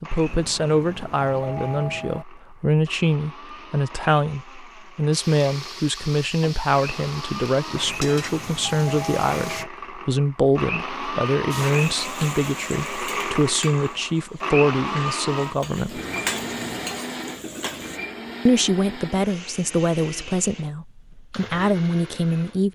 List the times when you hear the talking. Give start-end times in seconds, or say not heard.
0.0-16.0, 18.4-22.7.